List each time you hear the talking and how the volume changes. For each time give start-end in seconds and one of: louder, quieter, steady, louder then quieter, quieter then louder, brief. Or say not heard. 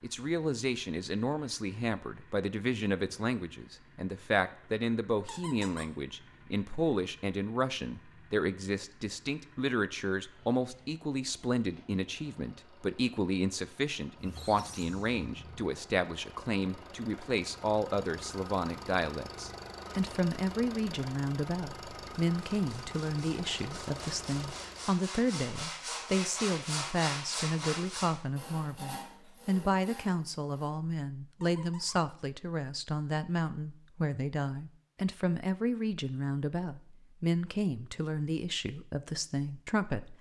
0.0-40.1 steady.